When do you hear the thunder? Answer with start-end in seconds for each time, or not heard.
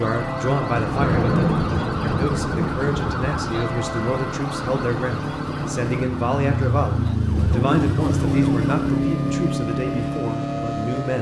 0.7-3.5.